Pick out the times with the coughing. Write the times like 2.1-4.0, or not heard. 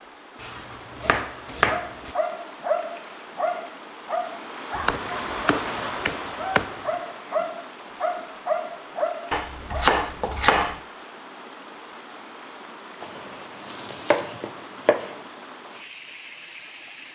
not heard.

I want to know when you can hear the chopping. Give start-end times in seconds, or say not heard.
0.4-2.1, 4.8-6.7, 9.3-10.8, 13.0-15.2.